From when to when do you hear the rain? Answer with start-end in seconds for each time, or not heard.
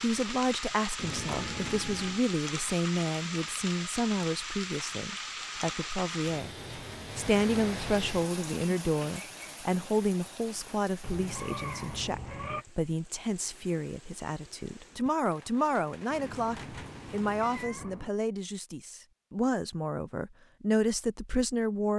0.0-17.6.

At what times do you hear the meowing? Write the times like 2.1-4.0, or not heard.
0.9-2.2, 11.0-12.7, 16.1-18.1.